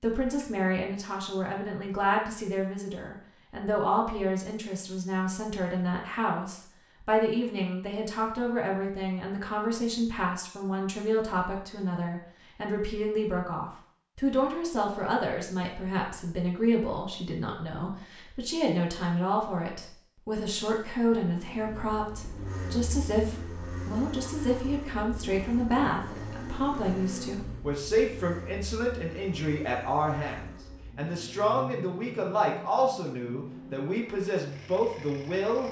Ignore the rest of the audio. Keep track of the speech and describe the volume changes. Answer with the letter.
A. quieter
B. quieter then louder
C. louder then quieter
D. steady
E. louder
D.